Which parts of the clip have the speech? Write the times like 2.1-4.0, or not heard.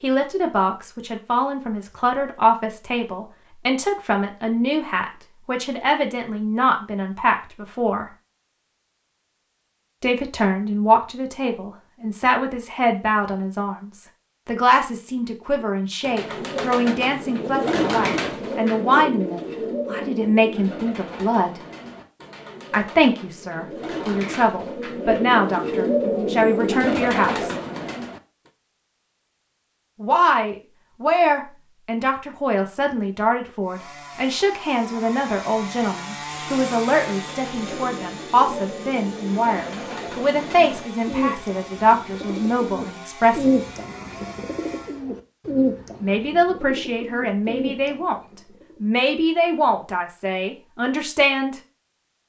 0.0-8.1, 10.0-21.6, 22.7-27.6, 30.0-43.5, 46.0-48.2, 48.8-51.5.